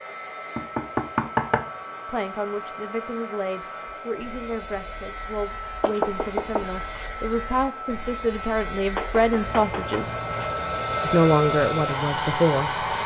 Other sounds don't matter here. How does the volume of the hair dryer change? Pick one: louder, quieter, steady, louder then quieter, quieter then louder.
louder.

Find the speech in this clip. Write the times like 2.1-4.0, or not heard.
2.0-10.2, 11.0-12.8.